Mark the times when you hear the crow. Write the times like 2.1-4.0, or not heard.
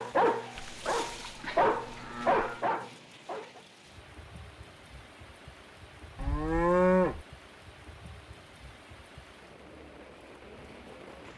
not heard.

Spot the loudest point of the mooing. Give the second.
7 s.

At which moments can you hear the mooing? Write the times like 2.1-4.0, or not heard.
0.6-2.6, 6.2-7.2.